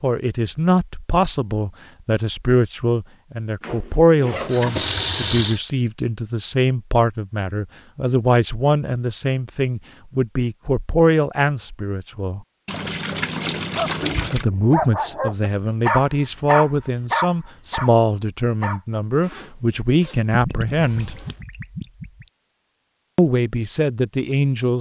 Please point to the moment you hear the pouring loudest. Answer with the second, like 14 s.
5 s.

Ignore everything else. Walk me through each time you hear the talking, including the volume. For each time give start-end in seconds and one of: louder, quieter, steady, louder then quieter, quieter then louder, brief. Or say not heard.
0.0-12.4 steady
14.3-21.2 steady
23.1-24.7 brief.